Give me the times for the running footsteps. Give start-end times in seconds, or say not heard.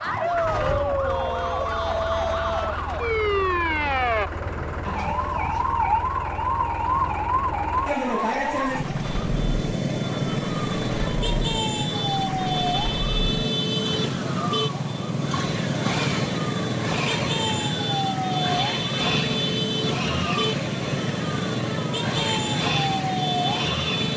not heard.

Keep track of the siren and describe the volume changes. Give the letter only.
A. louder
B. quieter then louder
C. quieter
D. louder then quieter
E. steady
E.